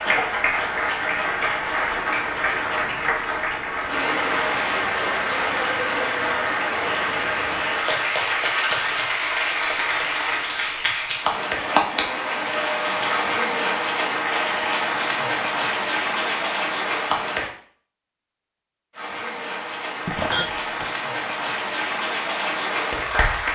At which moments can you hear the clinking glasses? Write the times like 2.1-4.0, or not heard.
20.1-20.9.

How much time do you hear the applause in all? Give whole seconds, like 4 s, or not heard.
22 s.